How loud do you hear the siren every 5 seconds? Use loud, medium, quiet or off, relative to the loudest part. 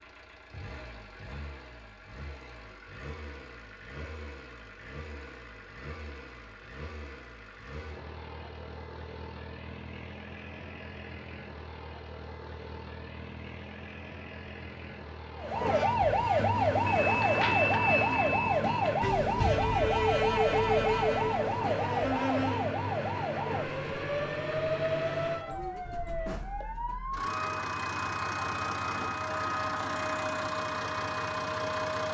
off, off, off, loud, loud, medium, medium.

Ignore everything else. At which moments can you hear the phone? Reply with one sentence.
You can hear the phone from 16.9 to 19.1 s.